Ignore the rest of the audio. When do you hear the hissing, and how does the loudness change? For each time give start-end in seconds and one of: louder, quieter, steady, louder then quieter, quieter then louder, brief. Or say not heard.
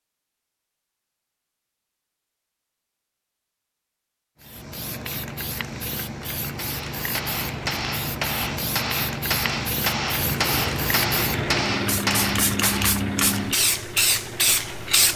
4.4-15.1 louder.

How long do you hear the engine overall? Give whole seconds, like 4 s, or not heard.
5 s.